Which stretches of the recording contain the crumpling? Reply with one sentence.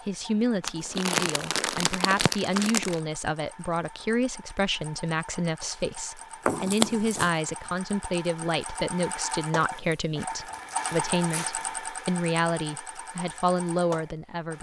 The crumpling can be heard from 0.6 to 3.0 s, from 6.5 to 7.3 s and from 9.8 to 11.8 s.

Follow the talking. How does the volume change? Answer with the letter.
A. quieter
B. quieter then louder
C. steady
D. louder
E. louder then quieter
C.